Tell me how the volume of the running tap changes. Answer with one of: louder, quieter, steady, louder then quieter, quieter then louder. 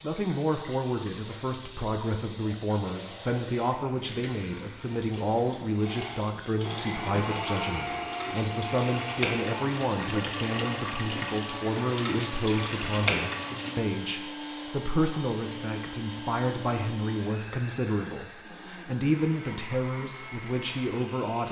louder.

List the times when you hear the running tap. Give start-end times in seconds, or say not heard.
0.0-13.8.